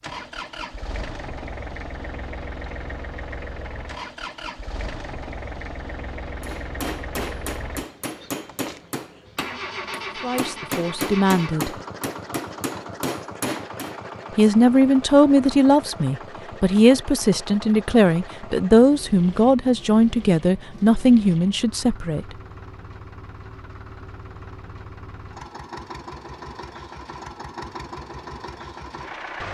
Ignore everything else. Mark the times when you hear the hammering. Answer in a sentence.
The hammering can be heard from 6.4 to 13.9 s.